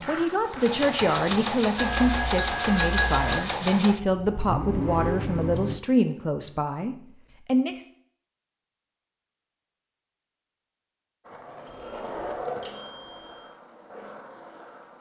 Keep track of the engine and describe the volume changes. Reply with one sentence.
The loudness of the engine stays about the same.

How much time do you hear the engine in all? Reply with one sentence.
You can hear the engine for 6 seconds altogether.